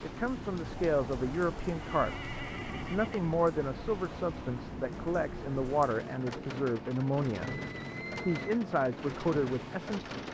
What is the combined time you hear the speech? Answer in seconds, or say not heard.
9 s.